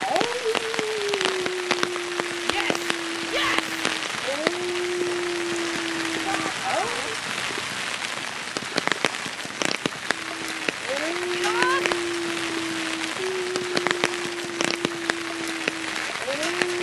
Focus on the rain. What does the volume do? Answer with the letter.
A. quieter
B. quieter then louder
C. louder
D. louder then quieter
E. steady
E.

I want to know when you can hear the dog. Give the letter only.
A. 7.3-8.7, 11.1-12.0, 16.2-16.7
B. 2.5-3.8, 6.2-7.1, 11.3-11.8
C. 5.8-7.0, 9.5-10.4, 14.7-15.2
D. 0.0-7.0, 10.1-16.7
D.